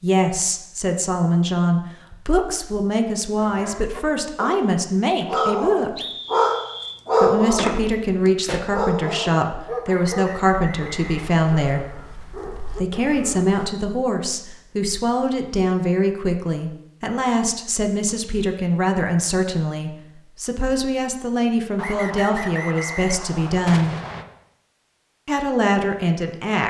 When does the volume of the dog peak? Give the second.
7 s.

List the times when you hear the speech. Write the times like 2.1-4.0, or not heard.
0.0-6.0, 7.2-11.9, 12.7-23.9, 25.2-26.6.